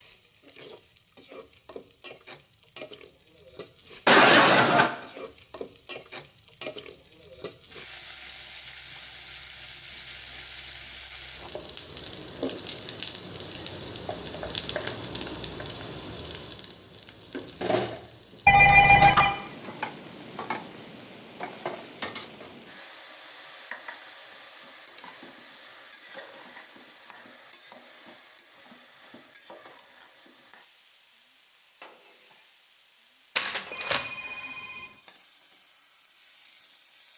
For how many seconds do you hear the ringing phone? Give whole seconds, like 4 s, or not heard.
3 s.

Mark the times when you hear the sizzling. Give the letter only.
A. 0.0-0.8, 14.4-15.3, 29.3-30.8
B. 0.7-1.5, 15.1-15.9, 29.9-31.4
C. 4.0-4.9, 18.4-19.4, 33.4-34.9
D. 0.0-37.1
D.